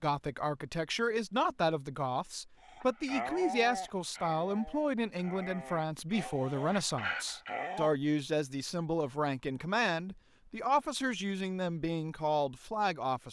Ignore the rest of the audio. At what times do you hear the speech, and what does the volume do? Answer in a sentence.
The speech can be heard from 0.0 to 13.2 s, at a steady volume.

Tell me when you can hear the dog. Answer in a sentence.
The dog can be heard from 2.6 to 7.9 s.